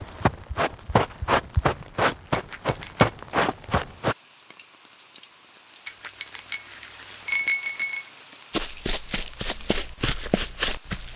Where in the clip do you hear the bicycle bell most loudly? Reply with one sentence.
The loudest moment of the bicycle bell is at 7 seconds.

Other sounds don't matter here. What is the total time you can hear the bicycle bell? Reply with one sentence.
You can hear the bicycle bell for 3 seconds altogether.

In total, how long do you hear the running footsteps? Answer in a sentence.
You can hear the running footsteps for 7 seconds altogether.